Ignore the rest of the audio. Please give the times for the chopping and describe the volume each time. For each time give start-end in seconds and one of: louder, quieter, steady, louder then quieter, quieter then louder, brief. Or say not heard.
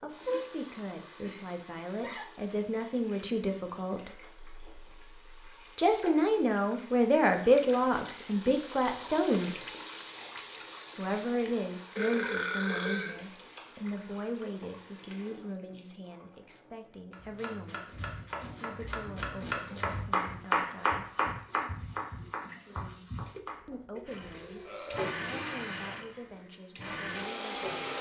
17.1-23.6 louder then quieter.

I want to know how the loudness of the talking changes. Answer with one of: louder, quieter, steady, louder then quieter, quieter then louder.
louder then quieter.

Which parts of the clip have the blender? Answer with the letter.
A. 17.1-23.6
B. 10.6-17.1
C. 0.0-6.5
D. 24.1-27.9
D.